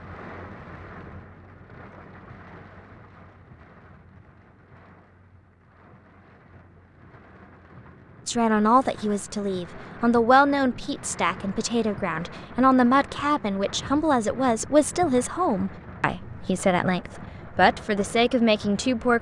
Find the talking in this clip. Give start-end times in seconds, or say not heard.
8.2-19.1.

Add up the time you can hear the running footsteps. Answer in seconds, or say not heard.
not heard.